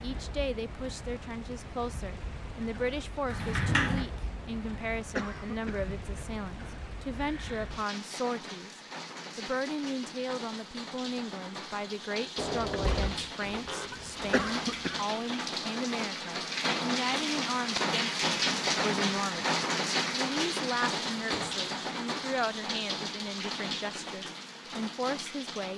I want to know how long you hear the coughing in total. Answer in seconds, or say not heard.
2 s.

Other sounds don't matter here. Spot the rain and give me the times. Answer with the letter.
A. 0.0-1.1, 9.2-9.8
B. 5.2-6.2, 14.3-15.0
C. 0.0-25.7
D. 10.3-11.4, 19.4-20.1
C.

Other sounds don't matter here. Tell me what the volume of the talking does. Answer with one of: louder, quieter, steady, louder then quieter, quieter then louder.
steady.